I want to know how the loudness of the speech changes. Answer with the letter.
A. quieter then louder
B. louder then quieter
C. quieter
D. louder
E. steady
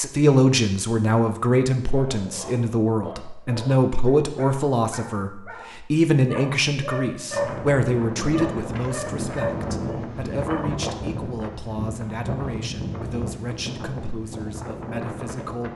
C.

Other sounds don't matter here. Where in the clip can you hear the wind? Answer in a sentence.
The wind can be heard from 7.3 to 15.7 s.